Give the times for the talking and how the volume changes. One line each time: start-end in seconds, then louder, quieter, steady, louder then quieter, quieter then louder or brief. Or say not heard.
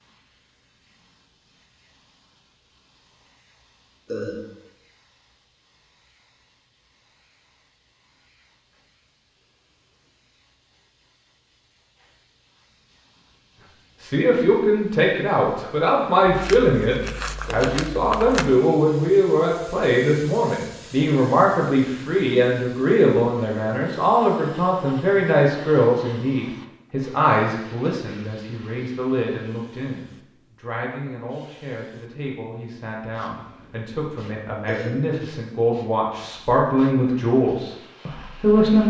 14.0-38.8 quieter then louder.